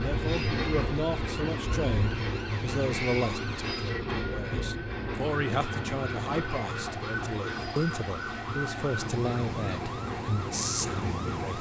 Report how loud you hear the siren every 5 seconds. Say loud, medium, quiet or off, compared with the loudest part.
medium, loud, loud.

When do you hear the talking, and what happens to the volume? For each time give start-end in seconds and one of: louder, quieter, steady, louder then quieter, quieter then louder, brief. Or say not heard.
0.0-11.5 steady.